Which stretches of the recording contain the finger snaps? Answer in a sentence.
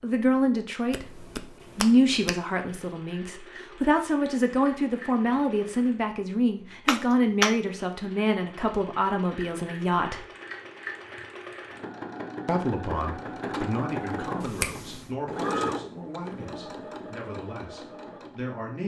The finger snaps can be heard from 0.9 to 2.4 s, from 6.8 to 7.5 s and from 14.4 to 15.1 s.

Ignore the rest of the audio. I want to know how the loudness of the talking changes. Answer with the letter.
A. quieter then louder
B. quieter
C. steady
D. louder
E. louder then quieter
B.